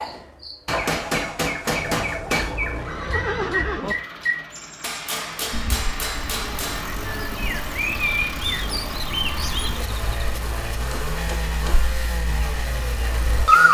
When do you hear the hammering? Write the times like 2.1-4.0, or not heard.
0.7-2.6, 4.8-6.8, 10.8-11.9.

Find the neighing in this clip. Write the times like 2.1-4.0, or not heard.
2.8-4.0.